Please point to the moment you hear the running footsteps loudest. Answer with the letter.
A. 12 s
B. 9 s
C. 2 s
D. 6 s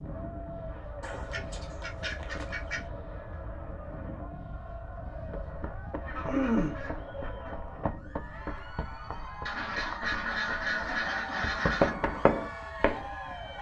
A.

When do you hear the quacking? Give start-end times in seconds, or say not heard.
1.0-2.9, 6.0-7.5, 9.4-11.9.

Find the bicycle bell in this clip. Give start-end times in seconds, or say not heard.
not heard.